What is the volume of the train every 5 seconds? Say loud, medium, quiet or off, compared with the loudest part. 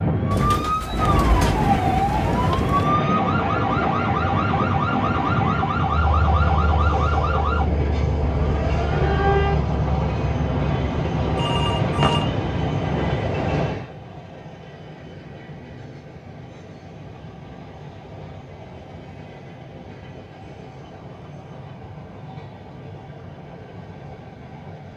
loud, loud, loud, quiet, quiet.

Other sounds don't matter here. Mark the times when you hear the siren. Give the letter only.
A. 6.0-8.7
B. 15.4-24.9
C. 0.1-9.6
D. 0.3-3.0
C.